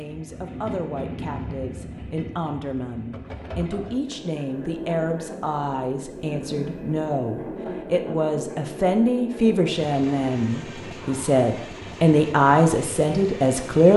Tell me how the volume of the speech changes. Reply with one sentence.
The loudness of the speech goes up.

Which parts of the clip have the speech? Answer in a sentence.
The speech can be heard from 0.0 to 13.9 s.